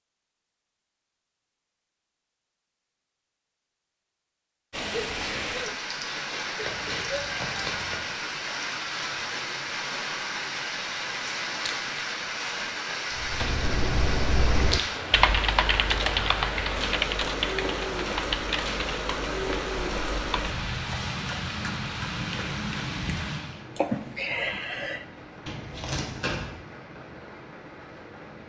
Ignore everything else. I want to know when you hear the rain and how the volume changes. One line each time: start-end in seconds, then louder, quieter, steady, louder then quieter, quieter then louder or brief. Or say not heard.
4.7-28.4 quieter.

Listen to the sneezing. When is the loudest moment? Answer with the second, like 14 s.
24 s.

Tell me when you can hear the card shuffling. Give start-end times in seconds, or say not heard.
6.6-8.0, 25.4-26.6.